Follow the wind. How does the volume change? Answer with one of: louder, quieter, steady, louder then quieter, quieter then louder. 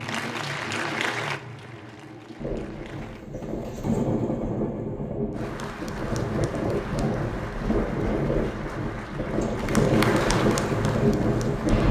louder.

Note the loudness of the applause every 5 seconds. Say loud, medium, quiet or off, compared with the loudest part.
loud, medium, loud.